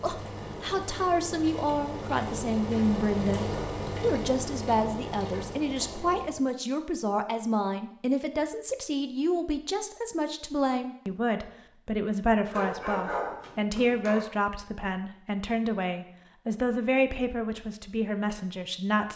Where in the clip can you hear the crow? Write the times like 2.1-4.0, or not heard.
not heard.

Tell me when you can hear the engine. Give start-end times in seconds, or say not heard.
0.0-6.4.